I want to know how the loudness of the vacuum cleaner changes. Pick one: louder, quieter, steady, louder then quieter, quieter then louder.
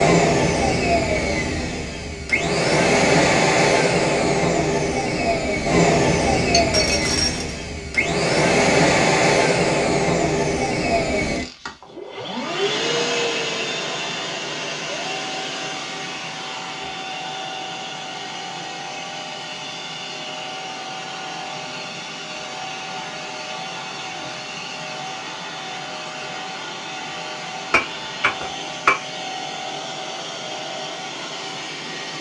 quieter.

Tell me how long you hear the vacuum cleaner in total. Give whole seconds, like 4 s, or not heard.
32 s.